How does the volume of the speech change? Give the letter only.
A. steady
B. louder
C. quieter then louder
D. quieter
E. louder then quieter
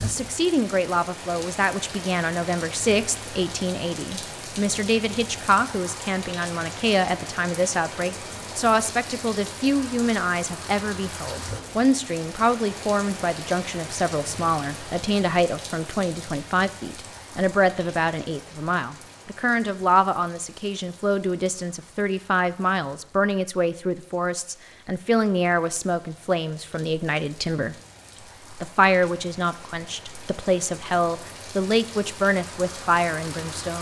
A.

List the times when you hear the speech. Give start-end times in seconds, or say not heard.
0.0-27.8, 28.5-33.7.